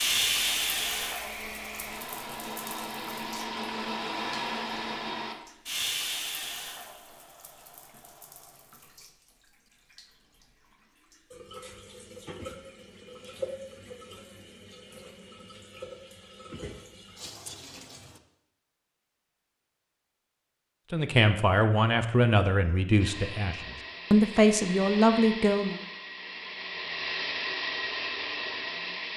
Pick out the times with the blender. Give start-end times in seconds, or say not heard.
0.2-5.3, 22.9-29.1.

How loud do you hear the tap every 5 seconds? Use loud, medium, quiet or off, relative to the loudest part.
loud, medium, medium, quiet, off, off.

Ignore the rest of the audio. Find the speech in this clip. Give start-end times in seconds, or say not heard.
20.9-25.8.